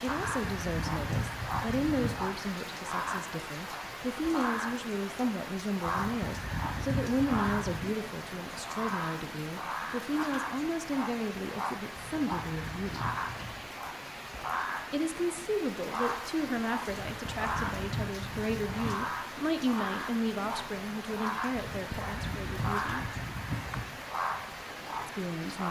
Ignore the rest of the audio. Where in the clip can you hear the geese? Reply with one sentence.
You can hear the geese from 0.1 to 2.4 s, from 5.8 to 7.9 s, from 11.9 to 13.7 s, from 16.9 to 19.1 s and from 21.6 to 23.9 s.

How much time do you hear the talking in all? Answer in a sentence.
You can hear the talking for 22 seconds altogether.